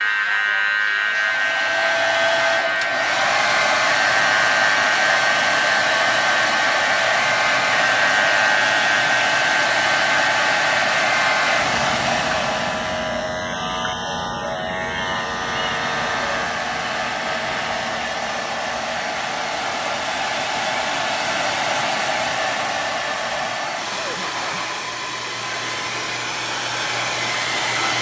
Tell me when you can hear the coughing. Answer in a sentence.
You can hear the coughing from 23.9 to 24.8 s.